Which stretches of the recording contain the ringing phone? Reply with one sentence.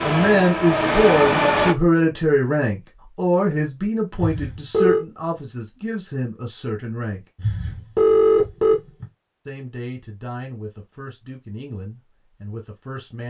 You can hear the ringing phone from 4.2 to 5.0 s and from 7.4 to 9.1 s.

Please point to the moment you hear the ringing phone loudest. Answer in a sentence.
The volume of the ringing phone peaks at 8 seconds.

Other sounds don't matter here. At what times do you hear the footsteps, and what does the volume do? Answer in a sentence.
The footsteps can't be heard in this clip.